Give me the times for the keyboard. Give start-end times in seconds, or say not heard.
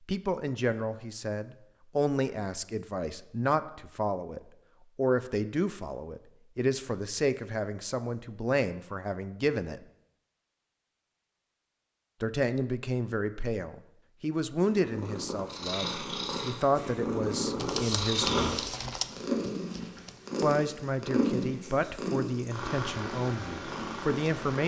17.6-20.2.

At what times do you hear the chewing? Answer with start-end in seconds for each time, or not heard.
not heard.